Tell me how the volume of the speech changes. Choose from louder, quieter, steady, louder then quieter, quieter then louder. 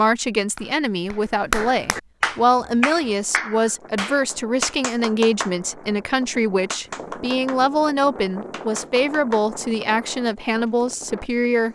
steady.